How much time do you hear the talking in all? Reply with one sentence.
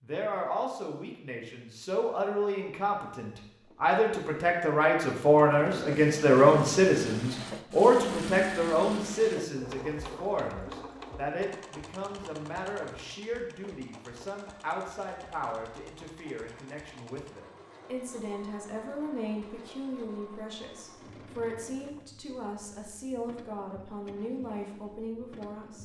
You can hear the talking for 26 seconds altogether.